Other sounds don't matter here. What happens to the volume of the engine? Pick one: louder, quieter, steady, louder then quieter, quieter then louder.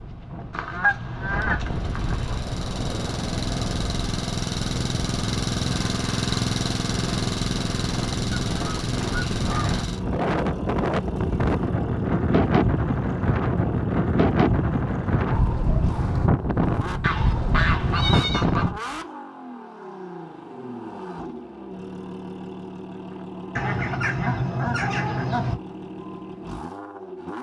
quieter.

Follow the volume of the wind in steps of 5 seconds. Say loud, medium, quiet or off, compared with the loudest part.
medium, medium, loud, loud, off, off.